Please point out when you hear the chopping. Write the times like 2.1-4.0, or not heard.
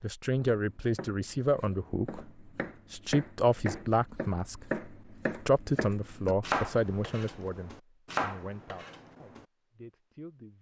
0.3-9.4.